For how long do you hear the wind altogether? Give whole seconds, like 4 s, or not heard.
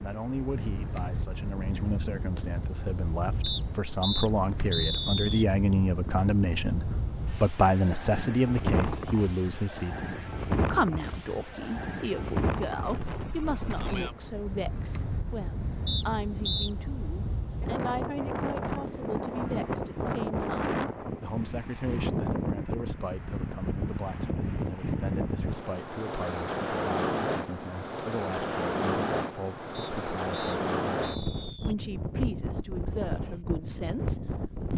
35 s.